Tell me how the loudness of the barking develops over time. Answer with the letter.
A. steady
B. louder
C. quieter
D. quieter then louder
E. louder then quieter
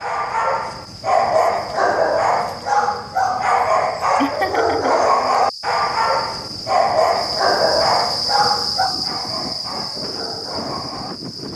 C.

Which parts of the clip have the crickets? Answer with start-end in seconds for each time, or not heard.
0.0-11.5.